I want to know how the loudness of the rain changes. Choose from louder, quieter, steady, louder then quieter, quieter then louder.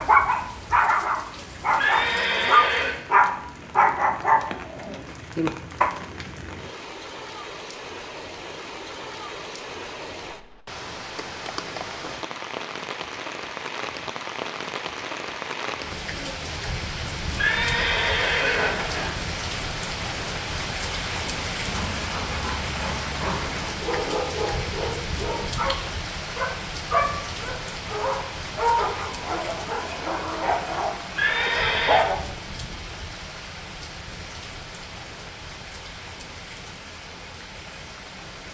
louder then quieter.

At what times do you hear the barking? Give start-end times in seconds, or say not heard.
0.0-5.9, 21.6-32.2.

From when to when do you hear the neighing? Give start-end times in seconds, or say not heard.
1.8-3.0, 17.4-19.1, 31.1-32.0.